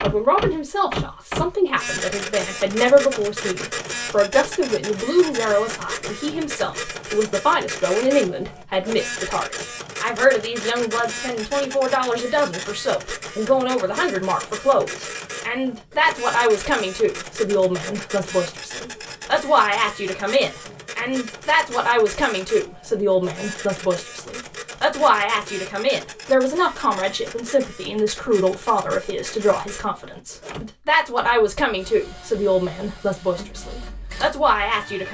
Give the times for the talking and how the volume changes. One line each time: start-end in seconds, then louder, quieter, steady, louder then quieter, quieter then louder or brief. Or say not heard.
0.0-35.0 steady.